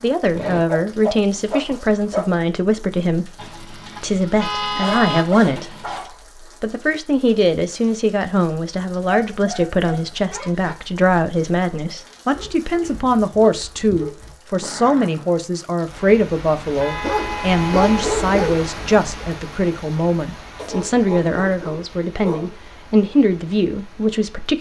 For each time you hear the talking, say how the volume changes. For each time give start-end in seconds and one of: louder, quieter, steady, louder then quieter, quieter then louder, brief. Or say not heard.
0.0-24.5 steady.